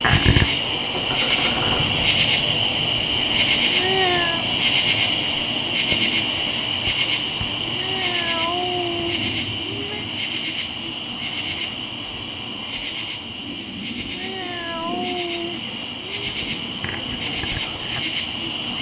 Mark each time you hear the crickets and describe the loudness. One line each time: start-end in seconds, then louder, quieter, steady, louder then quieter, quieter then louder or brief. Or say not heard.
0.0-18.7 quieter.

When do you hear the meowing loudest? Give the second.
4 s.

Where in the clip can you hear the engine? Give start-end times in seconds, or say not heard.
0.4-2.3.